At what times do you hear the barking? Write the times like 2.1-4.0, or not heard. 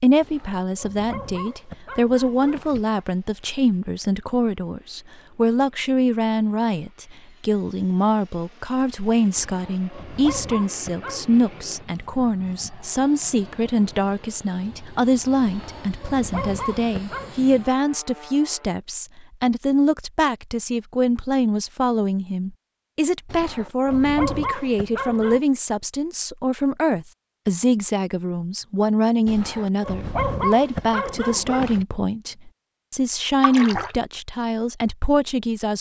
0.2-3.0, 9.3-11.2, 15.4-17.4, 23.2-25.4, 29.2-31.9.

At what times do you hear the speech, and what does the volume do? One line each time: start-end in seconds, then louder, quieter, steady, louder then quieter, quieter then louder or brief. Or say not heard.
0.0-35.7 steady.